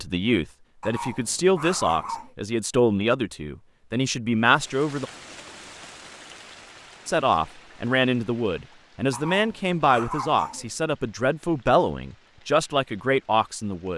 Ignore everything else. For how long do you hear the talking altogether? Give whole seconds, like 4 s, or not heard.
12 s.